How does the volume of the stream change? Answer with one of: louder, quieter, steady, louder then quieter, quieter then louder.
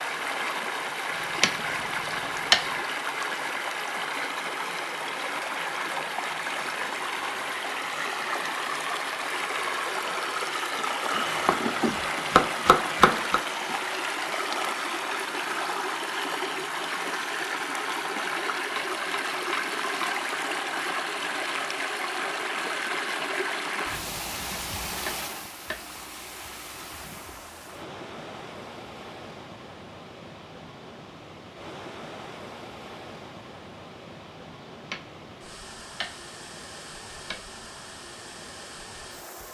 quieter.